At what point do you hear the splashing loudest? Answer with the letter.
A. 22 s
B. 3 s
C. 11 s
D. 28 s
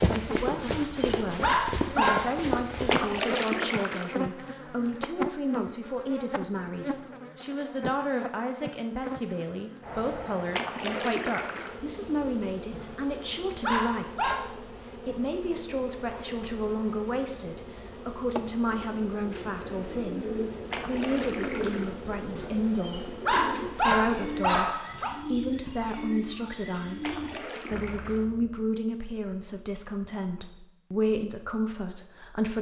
B.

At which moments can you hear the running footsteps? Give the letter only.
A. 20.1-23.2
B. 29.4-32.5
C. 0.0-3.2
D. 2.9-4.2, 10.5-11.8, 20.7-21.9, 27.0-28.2
C.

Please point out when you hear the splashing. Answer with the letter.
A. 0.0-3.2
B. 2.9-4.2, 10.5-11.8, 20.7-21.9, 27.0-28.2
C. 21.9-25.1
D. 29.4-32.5
B.